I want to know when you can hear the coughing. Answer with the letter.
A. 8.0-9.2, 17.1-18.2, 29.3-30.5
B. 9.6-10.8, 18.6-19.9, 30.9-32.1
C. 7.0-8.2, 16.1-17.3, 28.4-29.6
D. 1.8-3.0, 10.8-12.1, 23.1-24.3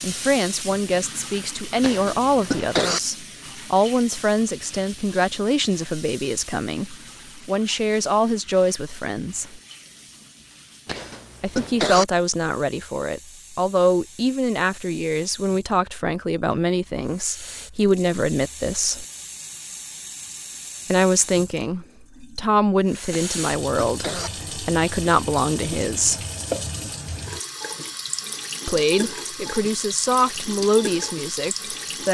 D.